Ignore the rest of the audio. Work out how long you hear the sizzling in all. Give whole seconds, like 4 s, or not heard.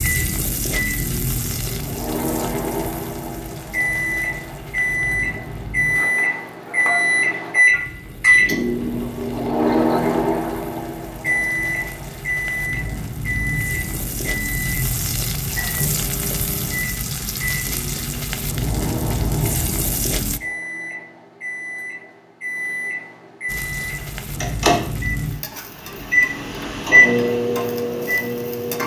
26 s.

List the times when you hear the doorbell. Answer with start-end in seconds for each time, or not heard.
not heard.